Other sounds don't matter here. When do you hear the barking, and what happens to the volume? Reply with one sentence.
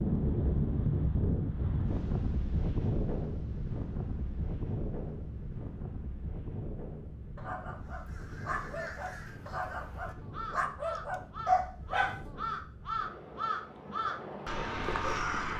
The barking can be heard from 7.3 to 12.2 s, getting louder.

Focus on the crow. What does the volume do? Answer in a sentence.
The volume of the crow goes up.